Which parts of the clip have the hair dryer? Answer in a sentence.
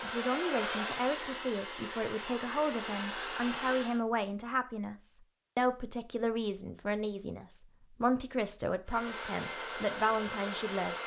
You can hear the hair dryer from 0.0 to 4.0 s and from 8.8 to 11.0 s.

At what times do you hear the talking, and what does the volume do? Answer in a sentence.
You can hear the talking from 0.0 to 11.0 s, at a steady volume.